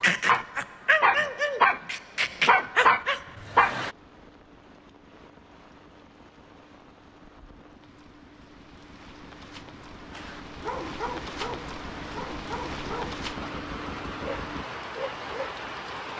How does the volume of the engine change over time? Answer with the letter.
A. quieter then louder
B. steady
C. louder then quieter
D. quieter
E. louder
E.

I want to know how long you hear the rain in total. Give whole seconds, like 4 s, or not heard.
16 s.